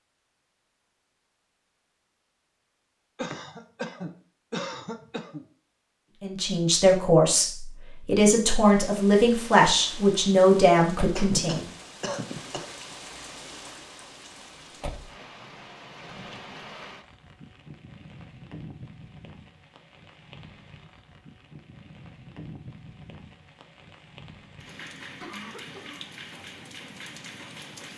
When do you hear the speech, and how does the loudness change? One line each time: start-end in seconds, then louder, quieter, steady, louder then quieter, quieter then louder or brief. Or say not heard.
6.2-11.7 steady.